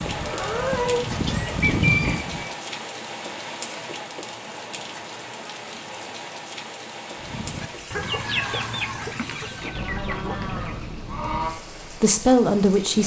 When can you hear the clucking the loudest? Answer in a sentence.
The volume of the clucking peaks at 2 seconds.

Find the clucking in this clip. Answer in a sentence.
The clucking can be heard from 0.0 to 2.5 s and from 7.2 to 11.0 s.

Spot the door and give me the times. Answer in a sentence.
The door can't be heard in this clip.